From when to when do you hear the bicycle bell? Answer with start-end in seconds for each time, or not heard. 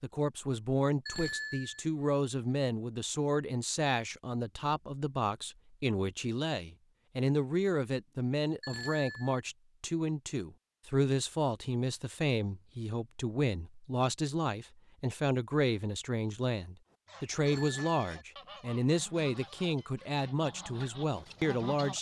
1.1-1.9, 8.6-9.4, 17.4-18.2.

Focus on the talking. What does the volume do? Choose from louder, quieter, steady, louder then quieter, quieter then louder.
steady.